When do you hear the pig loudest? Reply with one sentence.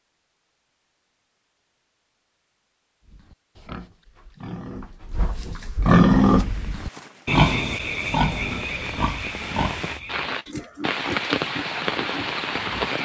The volume of the pig peaks at 6 seconds.